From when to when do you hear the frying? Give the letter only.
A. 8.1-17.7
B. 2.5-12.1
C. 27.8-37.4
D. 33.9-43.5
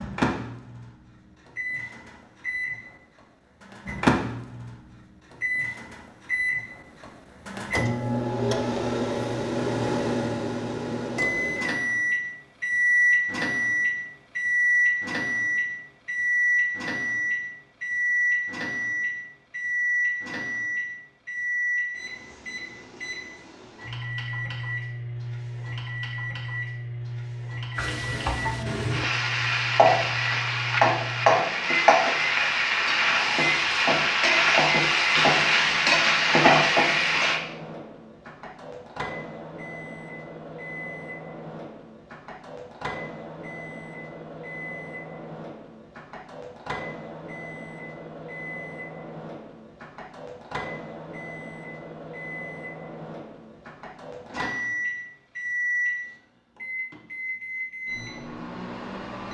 C.